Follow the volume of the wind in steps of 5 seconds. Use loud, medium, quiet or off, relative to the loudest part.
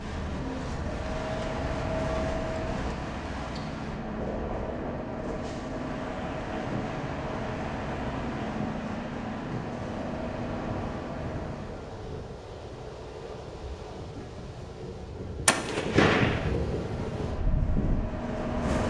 medium, medium, medium, loud.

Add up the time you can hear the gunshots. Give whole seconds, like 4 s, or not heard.
2 s.